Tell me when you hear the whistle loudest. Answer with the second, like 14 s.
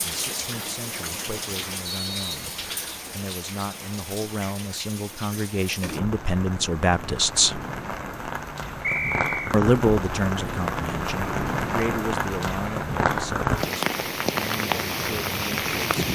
9 s.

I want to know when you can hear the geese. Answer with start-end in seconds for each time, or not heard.
not heard.